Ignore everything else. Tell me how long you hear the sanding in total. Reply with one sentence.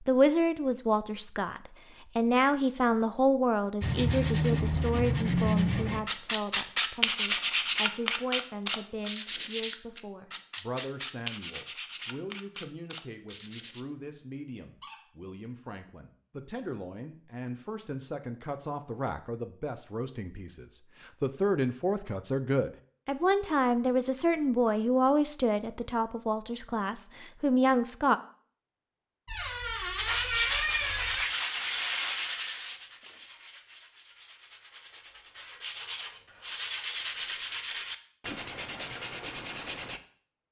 You can hear the sanding for 20 seconds altogether.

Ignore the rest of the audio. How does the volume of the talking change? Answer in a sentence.
The loudness of the talking goes down, then up.